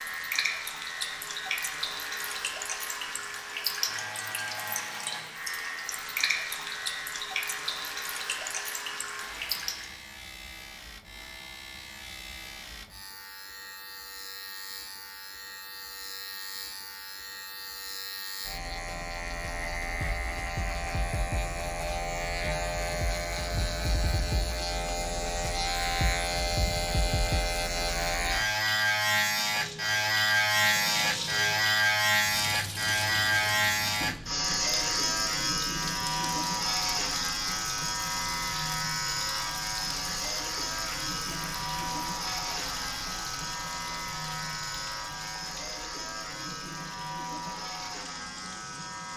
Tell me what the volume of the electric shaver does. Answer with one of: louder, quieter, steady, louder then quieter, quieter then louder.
louder then quieter.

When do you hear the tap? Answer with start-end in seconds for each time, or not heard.
0.0-9.9, 29.4-49.1.